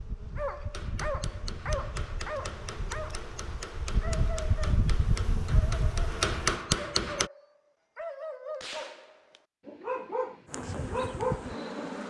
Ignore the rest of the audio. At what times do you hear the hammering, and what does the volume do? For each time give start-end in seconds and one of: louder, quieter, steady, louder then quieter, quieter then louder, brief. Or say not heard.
0.7-7.3 louder.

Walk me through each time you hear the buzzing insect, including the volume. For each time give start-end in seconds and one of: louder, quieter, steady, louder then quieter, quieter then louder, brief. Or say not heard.
0.0-6.6 louder
10.4-12.0 brief.